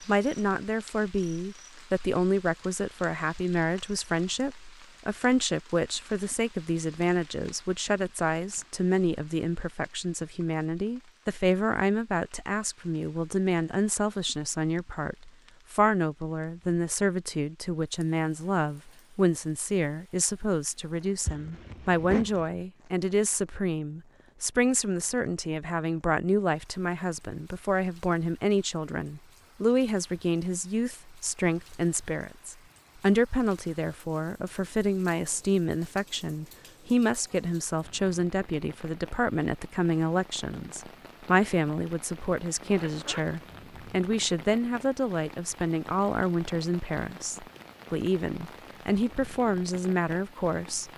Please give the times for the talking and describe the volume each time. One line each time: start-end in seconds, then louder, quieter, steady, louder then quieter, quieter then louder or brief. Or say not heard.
0.1-50.9 steady.